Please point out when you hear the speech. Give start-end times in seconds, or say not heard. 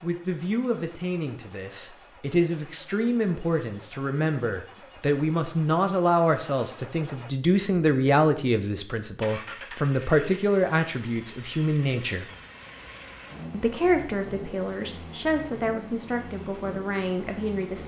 0.0-12.3, 13.5-17.8.